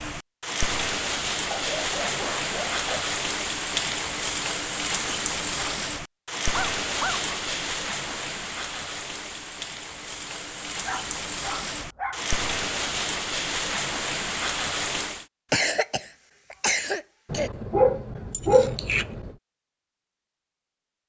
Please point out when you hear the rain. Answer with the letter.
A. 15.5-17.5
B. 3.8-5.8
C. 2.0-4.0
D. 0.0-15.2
D.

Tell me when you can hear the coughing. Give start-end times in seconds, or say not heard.
15.5-17.5.